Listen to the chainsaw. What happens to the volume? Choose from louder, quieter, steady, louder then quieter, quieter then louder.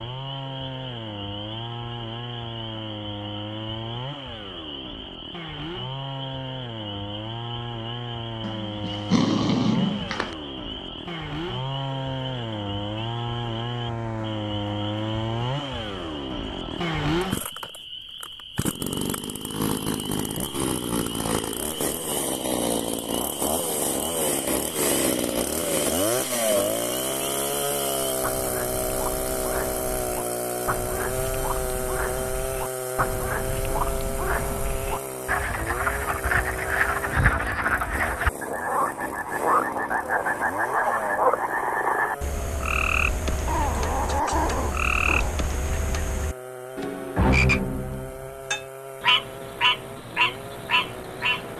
louder then quieter.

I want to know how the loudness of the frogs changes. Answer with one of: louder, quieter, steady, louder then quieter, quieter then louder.
louder.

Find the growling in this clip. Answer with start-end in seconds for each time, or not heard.
8.4-10.3, 43.5-45.4.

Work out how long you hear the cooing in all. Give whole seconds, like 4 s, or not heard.
not heard.